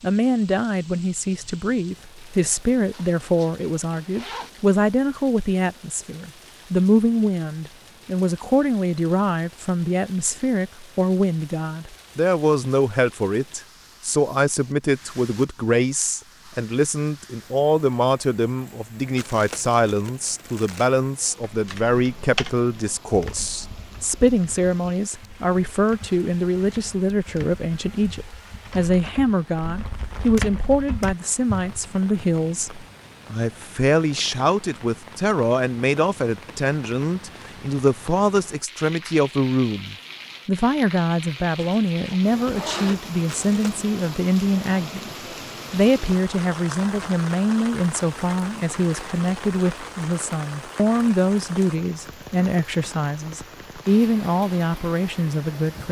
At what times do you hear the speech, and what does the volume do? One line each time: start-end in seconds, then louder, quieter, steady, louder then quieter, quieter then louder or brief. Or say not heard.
0.0-55.8 steady.